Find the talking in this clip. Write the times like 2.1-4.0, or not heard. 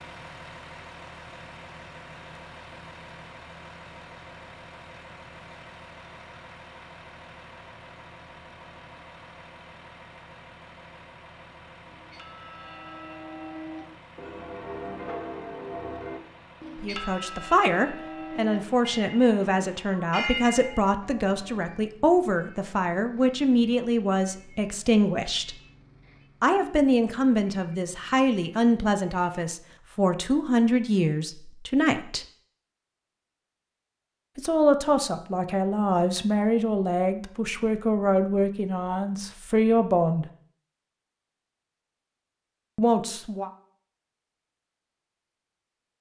16.8-25.6, 26.4-32.2, 34.4-40.2, 42.8-43.5.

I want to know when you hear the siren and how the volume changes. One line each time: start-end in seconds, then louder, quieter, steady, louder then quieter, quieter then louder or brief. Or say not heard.
not heard.